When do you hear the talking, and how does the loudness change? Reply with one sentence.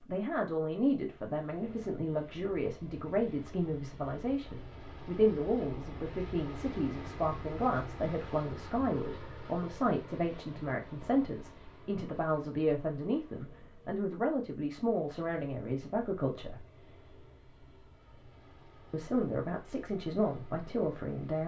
You can hear the talking from 0.1 to 16.6 s, at a steady volume; and briefly from 18.9 to 21.4 s.